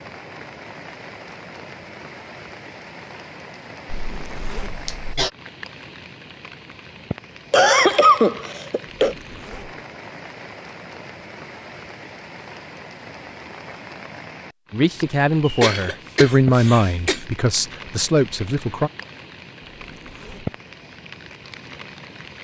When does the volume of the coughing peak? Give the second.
8 s.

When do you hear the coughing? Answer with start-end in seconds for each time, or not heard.
3.9-5.3, 7.5-9.2, 15.4-17.2.